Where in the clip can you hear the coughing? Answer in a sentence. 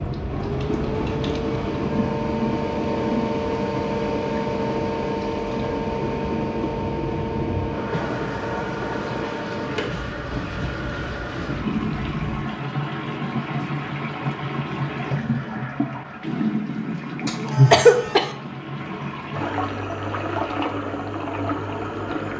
You can hear the coughing from 17.2 to 18.3 s.